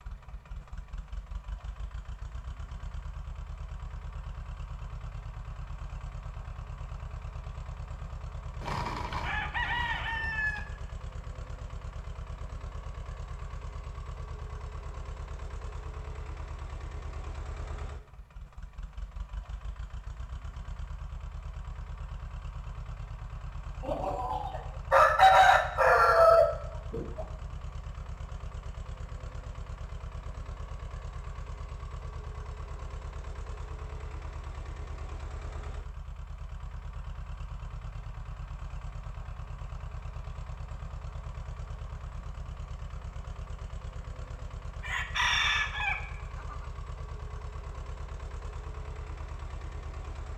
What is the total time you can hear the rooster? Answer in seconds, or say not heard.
7 s.